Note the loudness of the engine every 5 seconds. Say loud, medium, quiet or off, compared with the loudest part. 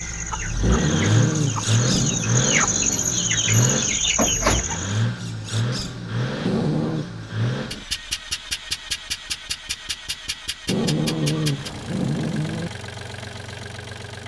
loud, loud, medium.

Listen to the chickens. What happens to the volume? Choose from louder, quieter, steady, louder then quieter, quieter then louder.
louder.